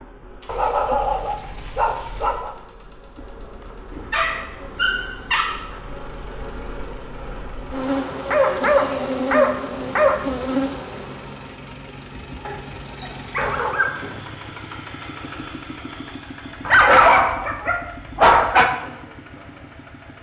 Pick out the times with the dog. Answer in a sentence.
The dog can be heard from 0.5 to 2.5 s, from 4.1 to 5.6 s, from 8.3 to 10.2 s, from 12.4 to 14.1 s and from 16.6 to 18.7 s.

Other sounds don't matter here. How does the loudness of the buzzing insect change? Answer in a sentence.
The loudness of the buzzing insect goes up.